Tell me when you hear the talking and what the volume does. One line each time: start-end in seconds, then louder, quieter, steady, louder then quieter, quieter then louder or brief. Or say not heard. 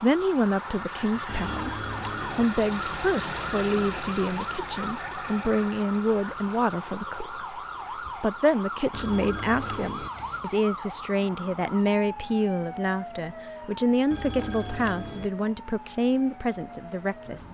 0.0-7.4 steady
8.2-17.4 steady.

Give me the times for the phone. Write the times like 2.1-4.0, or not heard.
1.2-2.5, 8.9-10.1, 14.1-15.3.